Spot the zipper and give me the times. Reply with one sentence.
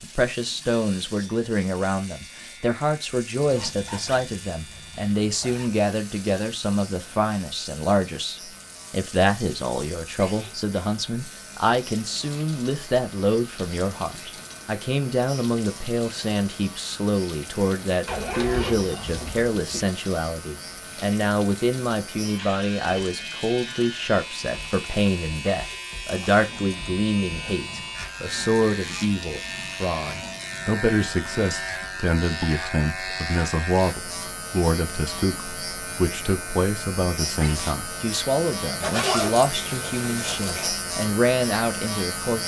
The zipper can be heard from 3.4 to 5.8 s, from 18.1 to 19.8 s and from 38.8 to 40.7 s.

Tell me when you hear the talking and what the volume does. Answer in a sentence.
You can hear the talking from 0.0 to 42.4 s, at a steady volume.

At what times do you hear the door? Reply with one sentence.
The door can't be heard in this clip.